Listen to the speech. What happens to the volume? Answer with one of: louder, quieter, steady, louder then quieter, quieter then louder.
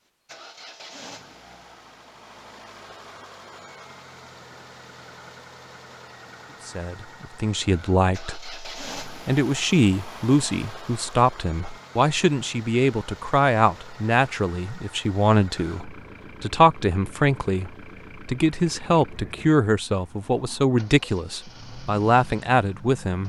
steady.